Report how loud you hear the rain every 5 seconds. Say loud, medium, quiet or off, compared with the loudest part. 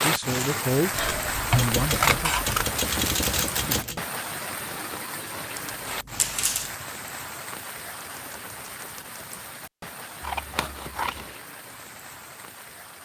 loud, medium, quiet.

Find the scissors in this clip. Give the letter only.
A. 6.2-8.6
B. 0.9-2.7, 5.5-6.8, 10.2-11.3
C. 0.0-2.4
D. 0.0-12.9
B.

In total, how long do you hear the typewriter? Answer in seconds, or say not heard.
4 s.